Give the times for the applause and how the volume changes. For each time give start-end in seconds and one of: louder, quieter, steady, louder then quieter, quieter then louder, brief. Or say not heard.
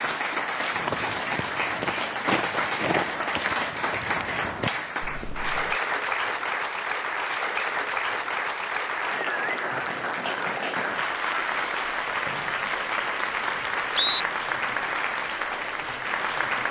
0.0-16.6 steady.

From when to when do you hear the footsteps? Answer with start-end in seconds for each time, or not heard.
0.7-5.8.